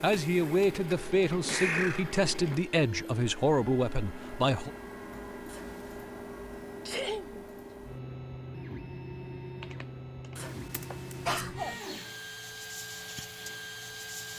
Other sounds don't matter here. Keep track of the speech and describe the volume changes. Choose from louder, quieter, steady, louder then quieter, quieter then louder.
steady.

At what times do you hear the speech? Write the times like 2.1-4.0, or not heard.
0.0-4.7.